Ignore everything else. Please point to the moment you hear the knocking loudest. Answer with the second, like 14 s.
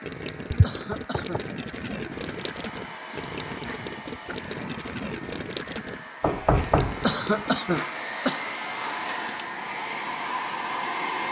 7 s.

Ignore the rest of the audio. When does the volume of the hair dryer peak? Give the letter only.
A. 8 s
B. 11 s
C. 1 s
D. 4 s
B.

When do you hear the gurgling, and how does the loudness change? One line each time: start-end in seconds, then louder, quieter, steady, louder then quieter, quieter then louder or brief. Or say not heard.
0.0-7.7 steady.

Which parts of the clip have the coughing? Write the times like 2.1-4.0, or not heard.
0.6-1.5, 7.0-8.4.